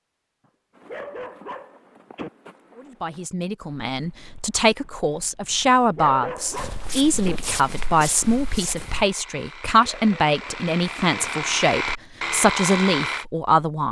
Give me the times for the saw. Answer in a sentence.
The saw can be heard from 7.7 to 13.2 s.